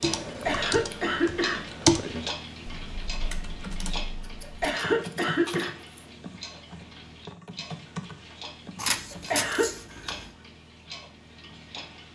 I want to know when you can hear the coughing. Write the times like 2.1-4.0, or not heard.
0.2-1.6, 4.4-5.8, 9.1-9.8.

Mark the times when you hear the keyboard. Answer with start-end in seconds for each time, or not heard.
0.0-9.4.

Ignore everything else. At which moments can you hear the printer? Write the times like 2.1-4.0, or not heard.
not heard.